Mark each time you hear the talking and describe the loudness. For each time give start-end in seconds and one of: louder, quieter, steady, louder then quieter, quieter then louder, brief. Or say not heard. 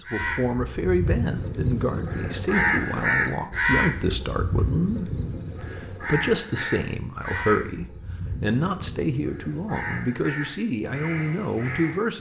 0.0-12.1 steady.